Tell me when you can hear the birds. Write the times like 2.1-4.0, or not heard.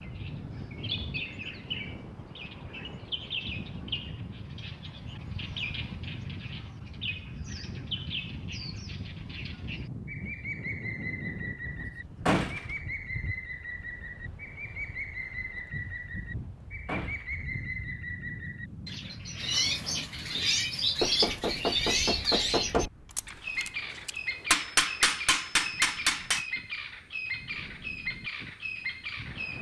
0.0-29.5.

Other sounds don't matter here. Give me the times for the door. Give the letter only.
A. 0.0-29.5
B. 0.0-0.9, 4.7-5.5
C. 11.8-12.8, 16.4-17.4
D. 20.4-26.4
C.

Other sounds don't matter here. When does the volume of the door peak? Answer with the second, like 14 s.
12 s.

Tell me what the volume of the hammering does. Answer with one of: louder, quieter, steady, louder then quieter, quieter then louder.
quieter then louder.